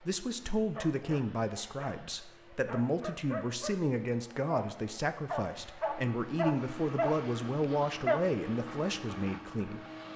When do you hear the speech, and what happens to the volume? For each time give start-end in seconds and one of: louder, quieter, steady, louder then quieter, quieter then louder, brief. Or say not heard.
0.0-9.8 steady.